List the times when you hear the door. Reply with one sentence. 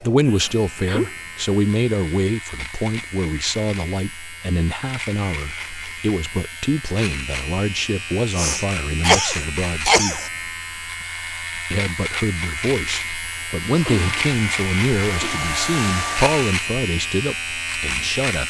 The door can't be heard in this clip.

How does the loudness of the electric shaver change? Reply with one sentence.
The volume of the electric shaver goes up.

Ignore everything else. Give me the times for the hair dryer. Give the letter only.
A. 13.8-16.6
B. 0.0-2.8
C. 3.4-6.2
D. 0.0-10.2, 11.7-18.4
A.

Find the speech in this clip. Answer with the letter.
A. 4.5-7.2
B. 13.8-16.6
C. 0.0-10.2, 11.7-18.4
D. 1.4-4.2
C.